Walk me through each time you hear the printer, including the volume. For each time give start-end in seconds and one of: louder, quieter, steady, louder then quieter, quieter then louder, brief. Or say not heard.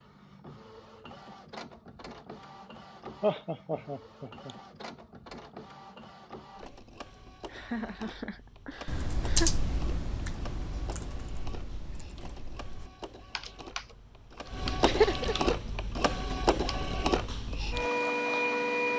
0.0-18.9 louder.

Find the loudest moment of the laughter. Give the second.
15 s.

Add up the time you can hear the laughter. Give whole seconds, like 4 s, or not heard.
4 s.